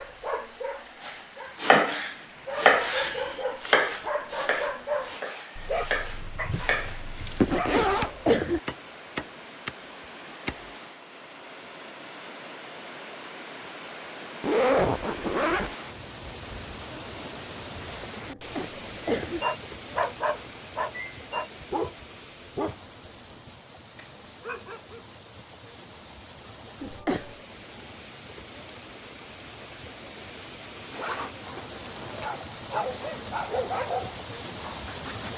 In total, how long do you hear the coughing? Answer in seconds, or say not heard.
3 s.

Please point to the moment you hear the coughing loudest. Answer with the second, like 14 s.
8 s.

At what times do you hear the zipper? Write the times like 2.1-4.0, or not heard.
7.4-8.1, 14.4-15.7, 30.9-32.4.